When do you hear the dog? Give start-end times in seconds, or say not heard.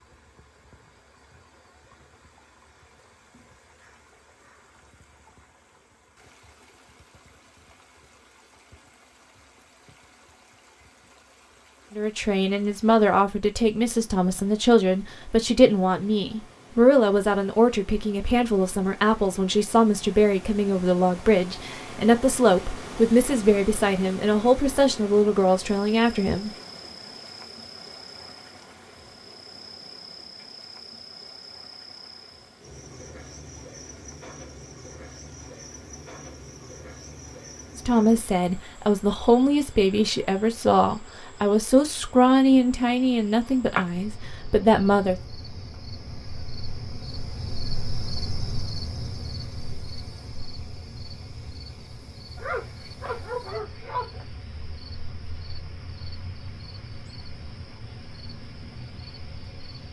52.4-54.2.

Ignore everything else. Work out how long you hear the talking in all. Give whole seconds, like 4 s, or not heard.
22 s.